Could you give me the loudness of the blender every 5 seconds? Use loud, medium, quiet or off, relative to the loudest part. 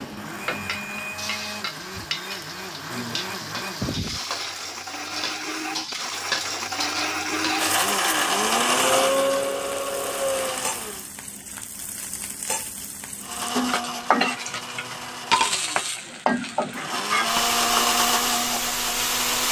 medium, loud, medium, loud.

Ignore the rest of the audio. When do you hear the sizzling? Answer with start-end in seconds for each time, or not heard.
0.0-19.4.